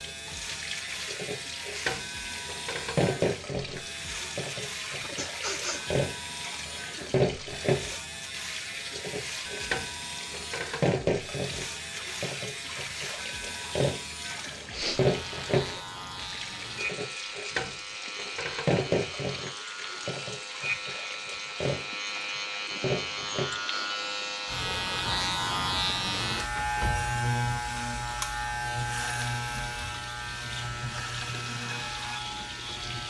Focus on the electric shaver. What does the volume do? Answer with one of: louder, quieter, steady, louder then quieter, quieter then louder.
louder.